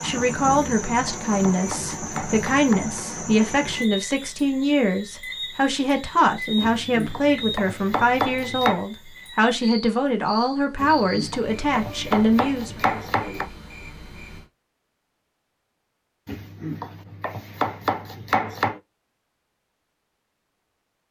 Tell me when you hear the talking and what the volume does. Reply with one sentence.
You can hear the talking from 0.0 to 12.8 s, at a steady volume.